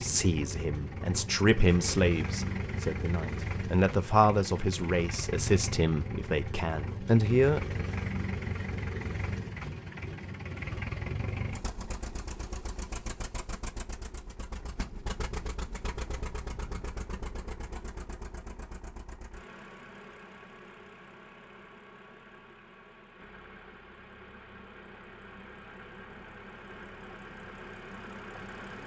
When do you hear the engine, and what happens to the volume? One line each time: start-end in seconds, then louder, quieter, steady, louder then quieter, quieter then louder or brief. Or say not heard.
0.0-28.8 quieter.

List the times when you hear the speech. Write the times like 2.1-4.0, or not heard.
0.0-7.7.